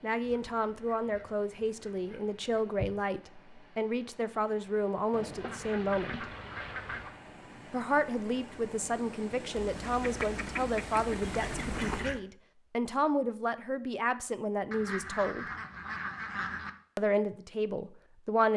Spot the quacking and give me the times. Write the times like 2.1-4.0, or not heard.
0.2-2.9, 5.1-7.2, 9.6-12.2, 14.7-16.7.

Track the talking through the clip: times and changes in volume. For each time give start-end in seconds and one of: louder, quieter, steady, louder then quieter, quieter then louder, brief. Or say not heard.
0.0-6.2 steady
7.7-15.4 steady
16.9-18.5 brief.